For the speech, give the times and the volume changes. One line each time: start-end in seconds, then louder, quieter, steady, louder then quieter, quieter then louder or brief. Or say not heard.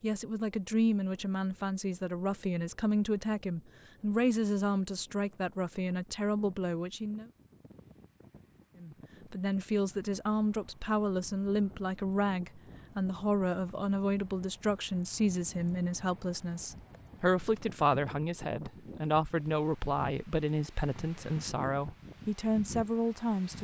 0.0-7.3 steady
8.8-23.6 steady.